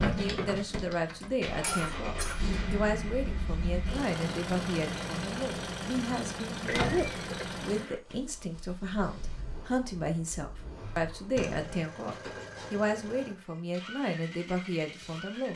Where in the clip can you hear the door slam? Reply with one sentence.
You can hear the door slam from 0.6 to 1.1 s, from 6.6 to 7.1 s and from 11.3 to 11.8 s.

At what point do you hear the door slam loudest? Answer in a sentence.
The loudest moment of the door slam is at 7 seconds.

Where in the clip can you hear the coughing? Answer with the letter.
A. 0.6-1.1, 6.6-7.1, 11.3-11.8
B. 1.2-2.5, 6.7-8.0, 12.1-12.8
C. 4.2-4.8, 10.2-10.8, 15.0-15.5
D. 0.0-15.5
B.